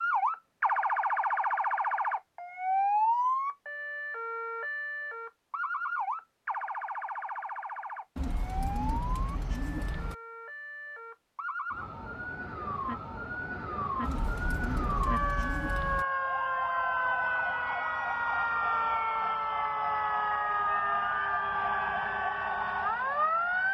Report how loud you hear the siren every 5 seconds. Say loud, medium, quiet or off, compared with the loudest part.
loud, medium, medium, loud, loud.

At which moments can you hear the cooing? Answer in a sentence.
The cooing can be heard from 8.2 to 10.2 s and from 14.0 to 16.1 s.